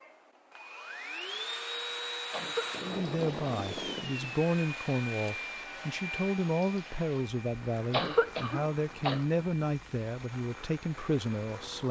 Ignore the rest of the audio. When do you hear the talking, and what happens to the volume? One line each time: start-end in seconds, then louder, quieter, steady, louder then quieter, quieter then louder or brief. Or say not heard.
2.8-11.8 steady.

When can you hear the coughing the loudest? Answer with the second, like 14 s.
8 s.